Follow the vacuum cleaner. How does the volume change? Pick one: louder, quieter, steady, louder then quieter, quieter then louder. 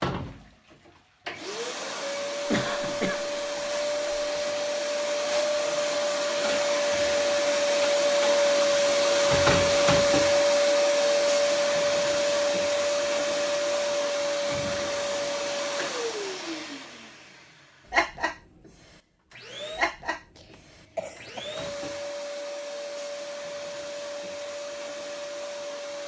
louder then quieter.